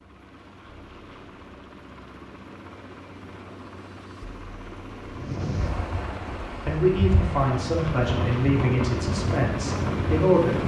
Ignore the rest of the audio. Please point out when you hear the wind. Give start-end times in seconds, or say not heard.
5.2-10.6.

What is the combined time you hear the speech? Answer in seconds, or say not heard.
4 s.